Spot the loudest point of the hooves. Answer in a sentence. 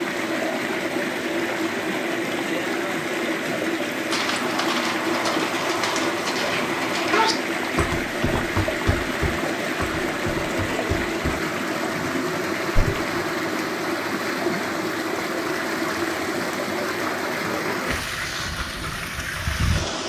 The loudest moment of the hooves is at 7 seconds.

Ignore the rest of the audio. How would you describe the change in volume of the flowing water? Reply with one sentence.
The loudness of the flowing water stays about the same.